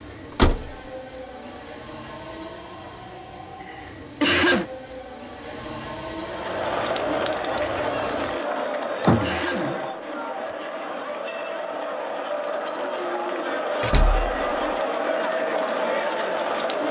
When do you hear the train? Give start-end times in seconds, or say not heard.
0.0-8.4.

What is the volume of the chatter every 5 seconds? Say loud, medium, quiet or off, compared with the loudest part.
off, loud, loud, loud.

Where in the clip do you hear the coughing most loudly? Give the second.
4 s.